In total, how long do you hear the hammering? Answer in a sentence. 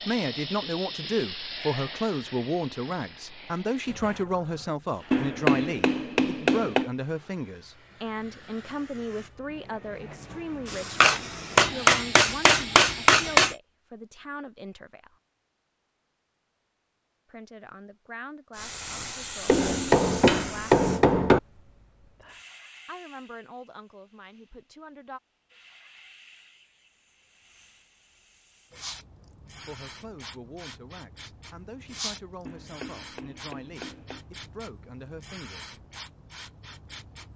You can hear the hammering for 8 seconds altogether.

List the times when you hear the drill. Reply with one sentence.
The drill can't be heard in this clip.